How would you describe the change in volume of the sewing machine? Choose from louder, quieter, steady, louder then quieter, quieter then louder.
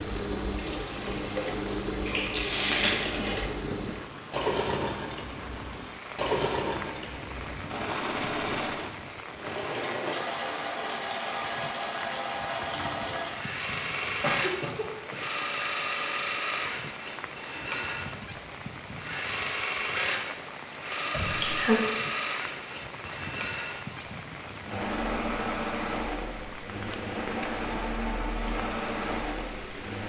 steady.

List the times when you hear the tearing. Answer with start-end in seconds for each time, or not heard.
0.6-3.0.